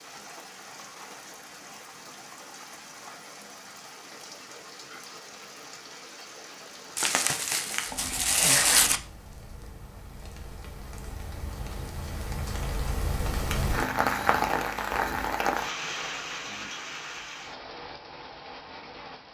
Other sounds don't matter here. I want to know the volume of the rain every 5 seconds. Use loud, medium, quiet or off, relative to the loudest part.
quiet, quiet, loud, loud.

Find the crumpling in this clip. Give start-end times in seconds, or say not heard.
7.0-9.0.